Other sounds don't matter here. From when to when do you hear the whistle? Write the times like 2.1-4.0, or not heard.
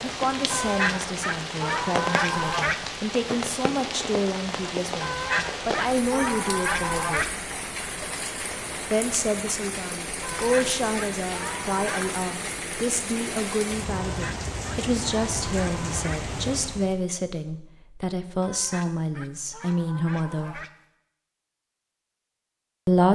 not heard.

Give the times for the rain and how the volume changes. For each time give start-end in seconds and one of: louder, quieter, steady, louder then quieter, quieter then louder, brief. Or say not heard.
0.0-17.0 steady.